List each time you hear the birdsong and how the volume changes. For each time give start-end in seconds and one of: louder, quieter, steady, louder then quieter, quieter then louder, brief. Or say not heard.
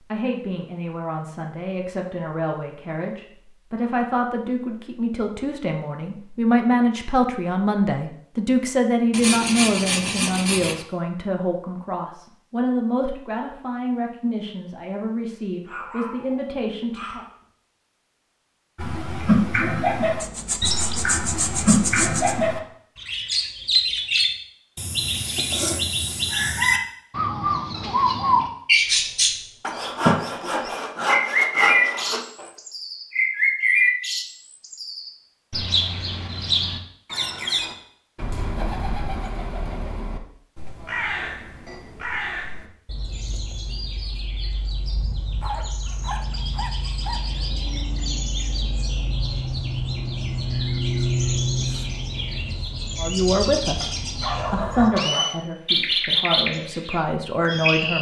18.8-57.9 quieter then louder.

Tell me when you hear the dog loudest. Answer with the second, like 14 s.
54 s.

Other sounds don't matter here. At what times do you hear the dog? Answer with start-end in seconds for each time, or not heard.
15.7-17.4, 53.8-55.3.